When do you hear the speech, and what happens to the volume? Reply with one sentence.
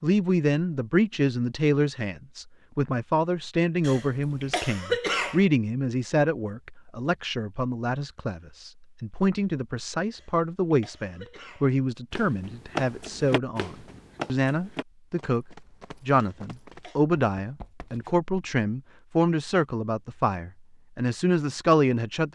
The speech can be heard from 0.0 to 22.3 s, at a steady volume.